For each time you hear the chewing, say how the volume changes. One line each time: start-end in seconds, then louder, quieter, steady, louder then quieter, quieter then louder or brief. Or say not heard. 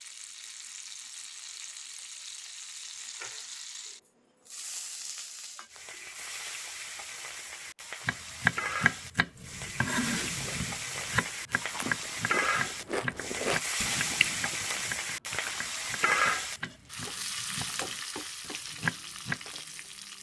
10.4-15.6 louder then quieter.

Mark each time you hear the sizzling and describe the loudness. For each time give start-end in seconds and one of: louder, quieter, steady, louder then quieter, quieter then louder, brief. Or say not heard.
0.0-20.1 louder.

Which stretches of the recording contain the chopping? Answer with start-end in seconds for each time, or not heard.
8.1-19.4.